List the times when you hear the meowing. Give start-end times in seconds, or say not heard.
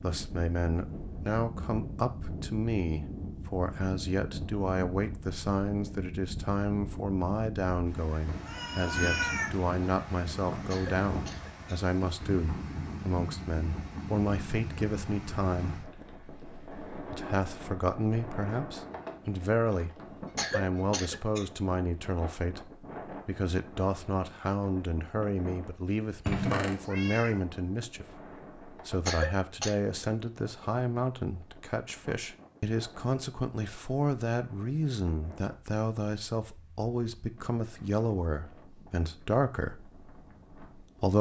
8.4-9.5, 26.2-27.4.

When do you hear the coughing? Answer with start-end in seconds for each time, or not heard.
10.7-11.7, 20.4-21.4, 29.1-29.8.